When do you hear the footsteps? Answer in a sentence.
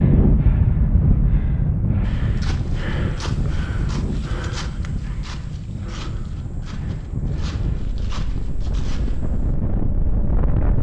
You can hear the footsteps from 2.0 to 9.6 s.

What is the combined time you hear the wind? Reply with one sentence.
The wind can be heard for 11 seconds in total.